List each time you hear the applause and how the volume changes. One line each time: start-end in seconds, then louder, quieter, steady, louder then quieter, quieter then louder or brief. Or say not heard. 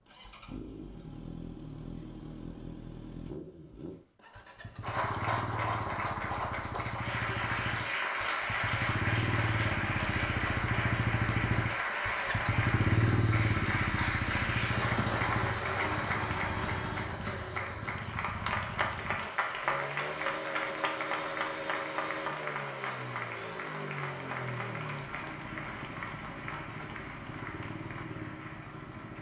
4.8-29.1 quieter.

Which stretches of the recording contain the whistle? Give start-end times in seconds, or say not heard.
not heard.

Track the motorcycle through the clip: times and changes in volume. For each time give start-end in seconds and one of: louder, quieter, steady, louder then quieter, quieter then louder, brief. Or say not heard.
0.0-29.1 louder then quieter.